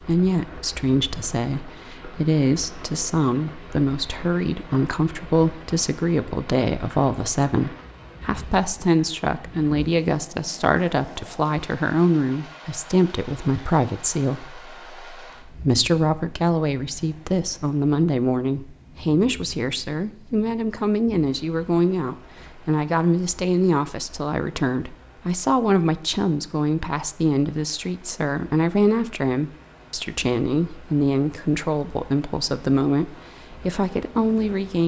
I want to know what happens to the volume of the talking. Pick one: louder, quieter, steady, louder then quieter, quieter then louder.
steady.